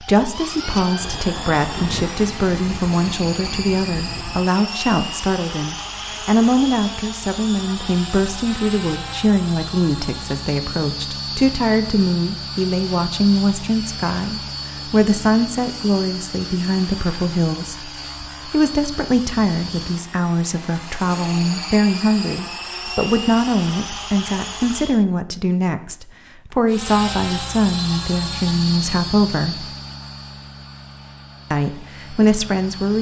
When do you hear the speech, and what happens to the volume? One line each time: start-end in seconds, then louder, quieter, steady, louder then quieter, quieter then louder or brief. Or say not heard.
0.0-29.6 steady
31.5-32.9 brief.